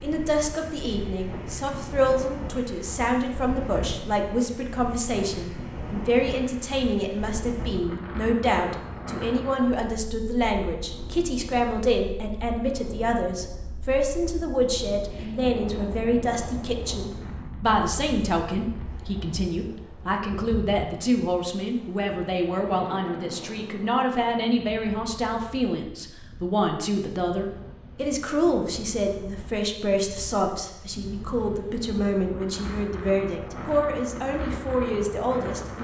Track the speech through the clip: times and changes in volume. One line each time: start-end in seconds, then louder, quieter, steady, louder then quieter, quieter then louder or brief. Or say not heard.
0.0-35.7 steady.